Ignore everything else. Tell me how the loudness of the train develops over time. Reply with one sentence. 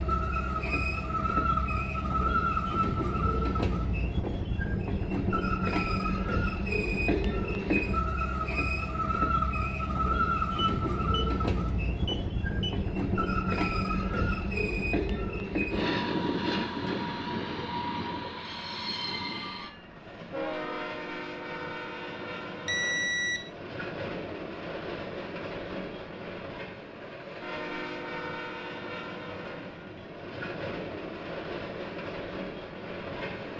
The loudness of the train goes down.